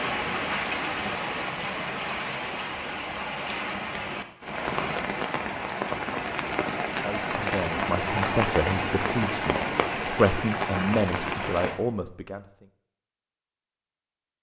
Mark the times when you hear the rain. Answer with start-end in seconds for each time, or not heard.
0.0-11.8.